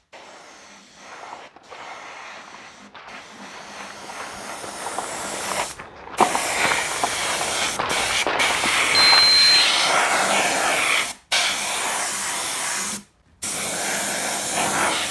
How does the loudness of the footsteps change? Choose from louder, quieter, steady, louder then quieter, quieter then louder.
louder.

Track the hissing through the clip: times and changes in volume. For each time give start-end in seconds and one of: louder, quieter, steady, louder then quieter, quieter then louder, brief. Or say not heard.
0.0-15.0 louder then quieter.